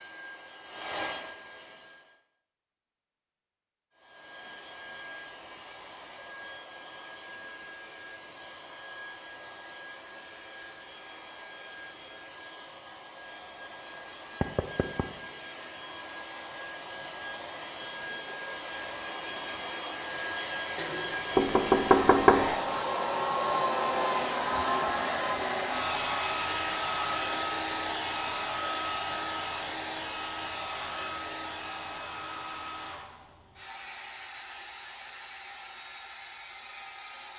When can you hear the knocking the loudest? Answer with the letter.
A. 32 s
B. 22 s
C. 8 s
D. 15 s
B.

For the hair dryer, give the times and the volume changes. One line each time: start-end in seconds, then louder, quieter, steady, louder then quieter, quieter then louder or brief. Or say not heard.
0.0-2.2 brief
4.0-37.3 louder then quieter.